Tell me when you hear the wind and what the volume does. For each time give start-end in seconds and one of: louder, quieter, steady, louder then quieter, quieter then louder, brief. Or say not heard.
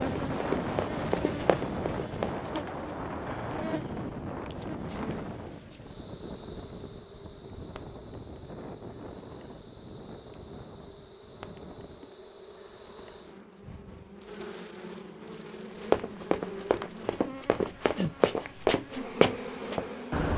0.0-12.2 quieter.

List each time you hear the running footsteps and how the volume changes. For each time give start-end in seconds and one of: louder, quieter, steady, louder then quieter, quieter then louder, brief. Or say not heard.
0.0-2.4 brief
15.8-20.3 louder.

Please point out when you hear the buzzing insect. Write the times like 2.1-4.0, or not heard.
0.0-20.3.